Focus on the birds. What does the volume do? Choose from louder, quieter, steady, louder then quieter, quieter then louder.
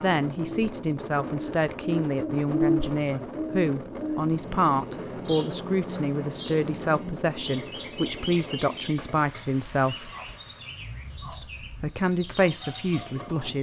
quieter.